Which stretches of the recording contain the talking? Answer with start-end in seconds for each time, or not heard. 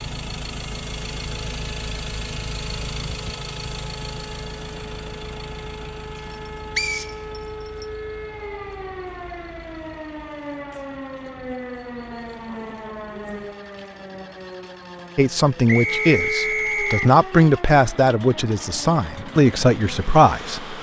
15.2-20.7.